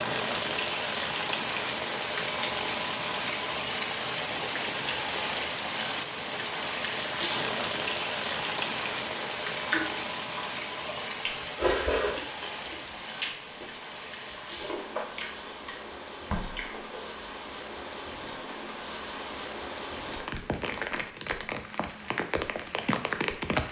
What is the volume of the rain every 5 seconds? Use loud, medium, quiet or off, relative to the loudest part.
loud, loud, medium, medium, loud.